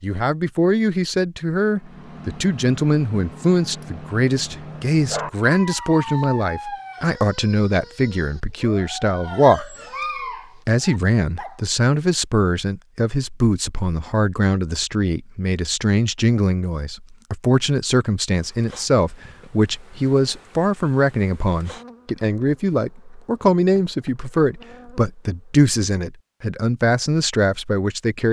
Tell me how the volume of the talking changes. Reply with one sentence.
The loudness of the talking stays about the same.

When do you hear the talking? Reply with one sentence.
You can hear the talking from 0.0 to 9.8 s and from 10.7 to 28.2 s.